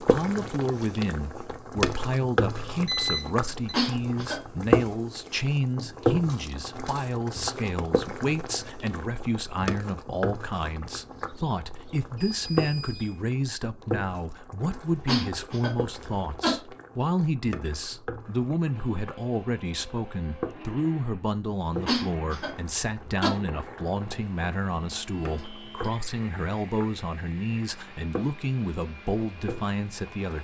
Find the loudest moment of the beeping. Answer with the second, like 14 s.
3 s.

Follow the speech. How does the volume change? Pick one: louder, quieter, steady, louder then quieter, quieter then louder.
steady.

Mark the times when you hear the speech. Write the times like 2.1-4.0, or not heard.
0.0-30.3.